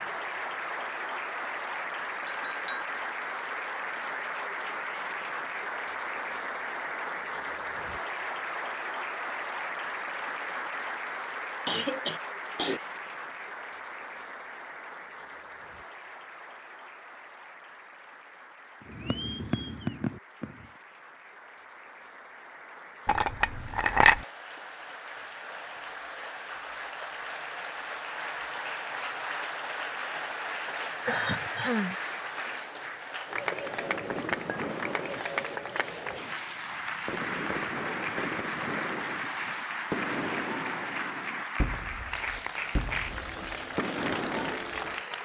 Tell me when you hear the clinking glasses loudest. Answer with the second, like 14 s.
24 s.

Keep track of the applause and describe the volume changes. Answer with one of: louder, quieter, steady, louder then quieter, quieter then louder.
quieter then louder.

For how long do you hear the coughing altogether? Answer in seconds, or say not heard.
2 s.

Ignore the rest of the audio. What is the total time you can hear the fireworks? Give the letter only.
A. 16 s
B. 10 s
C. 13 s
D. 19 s
C.